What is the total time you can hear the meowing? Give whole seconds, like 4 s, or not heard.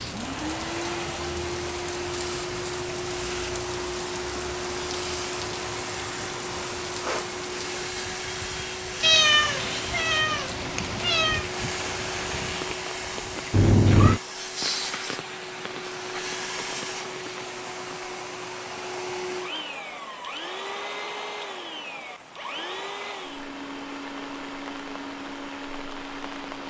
3 s.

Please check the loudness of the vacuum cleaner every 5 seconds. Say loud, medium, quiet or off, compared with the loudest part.
loud, loud, loud, loud, loud, medium.